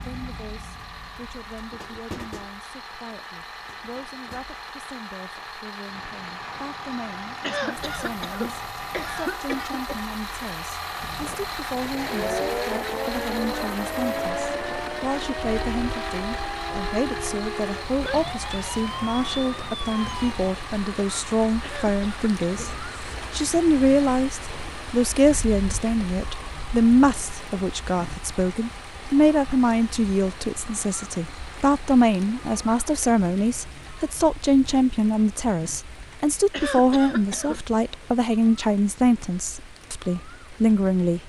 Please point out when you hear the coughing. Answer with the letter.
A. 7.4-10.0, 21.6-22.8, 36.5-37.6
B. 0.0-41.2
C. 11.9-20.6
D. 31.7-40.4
A.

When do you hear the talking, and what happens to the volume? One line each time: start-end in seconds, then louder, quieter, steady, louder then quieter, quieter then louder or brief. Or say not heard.
0.0-41.2 louder.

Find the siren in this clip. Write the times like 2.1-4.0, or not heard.
11.9-20.6.